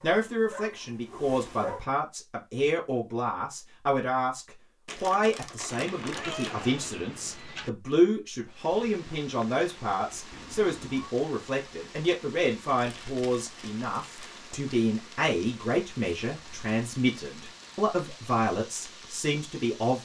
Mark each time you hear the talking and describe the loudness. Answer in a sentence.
You can hear the talking from 0.0 to 19.9 s, at a steady volume.